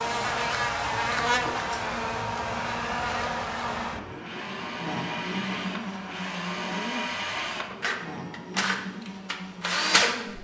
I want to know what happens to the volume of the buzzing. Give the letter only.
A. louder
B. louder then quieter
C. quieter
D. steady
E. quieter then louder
C.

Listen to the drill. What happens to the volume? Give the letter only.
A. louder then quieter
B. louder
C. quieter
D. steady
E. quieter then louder
B.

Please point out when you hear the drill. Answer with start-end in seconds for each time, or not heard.
0.0-10.2.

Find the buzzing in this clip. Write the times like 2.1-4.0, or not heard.
0.0-10.3.